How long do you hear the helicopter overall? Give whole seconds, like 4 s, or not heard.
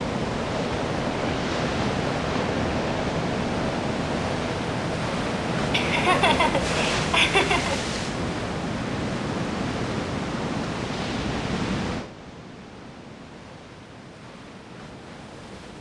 7 s.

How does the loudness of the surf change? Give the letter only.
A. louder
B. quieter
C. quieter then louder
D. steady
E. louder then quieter
B.